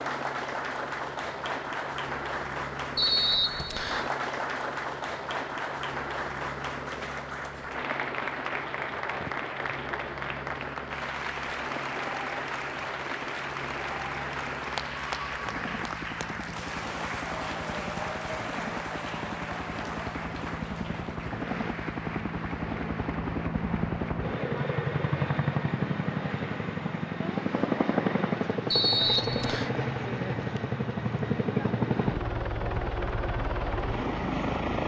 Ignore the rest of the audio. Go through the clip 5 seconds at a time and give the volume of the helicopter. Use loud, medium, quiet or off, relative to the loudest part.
medium, medium, medium, medium, loud, loud, loud.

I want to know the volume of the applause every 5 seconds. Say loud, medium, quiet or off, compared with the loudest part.
loud, loud, loud, loud, medium, medium, off.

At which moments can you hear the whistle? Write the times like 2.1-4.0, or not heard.
3.0-4.1, 28.7-29.7.